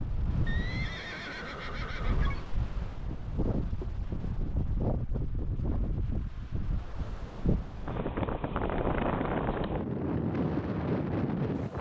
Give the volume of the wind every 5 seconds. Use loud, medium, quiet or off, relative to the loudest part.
medium, loud, loud.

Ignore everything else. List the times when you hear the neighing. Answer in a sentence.
You can hear the neighing from 0.5 to 2.5 s.